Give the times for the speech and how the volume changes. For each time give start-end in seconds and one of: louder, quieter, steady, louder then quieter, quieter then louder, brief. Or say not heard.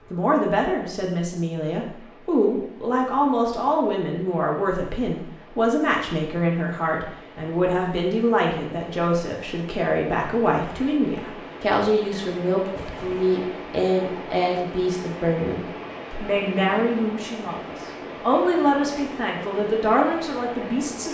0.1-17.6 steady
18.2-21.0 brief.